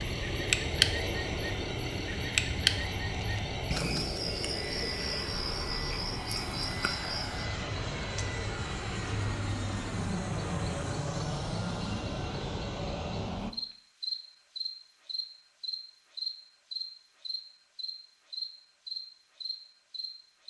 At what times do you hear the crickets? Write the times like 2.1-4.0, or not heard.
0.0-20.4.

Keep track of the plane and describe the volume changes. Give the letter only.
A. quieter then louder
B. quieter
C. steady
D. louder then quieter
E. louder
C.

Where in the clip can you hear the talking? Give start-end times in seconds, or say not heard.
not heard.